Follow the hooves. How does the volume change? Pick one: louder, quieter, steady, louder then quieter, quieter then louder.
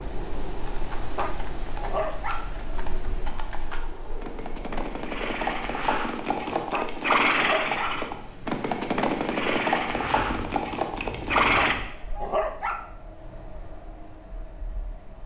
louder.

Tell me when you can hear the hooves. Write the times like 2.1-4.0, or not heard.
0.6-11.8.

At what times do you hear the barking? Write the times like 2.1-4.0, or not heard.
0.9-2.5, 6.5-8.1, 11.4-12.8.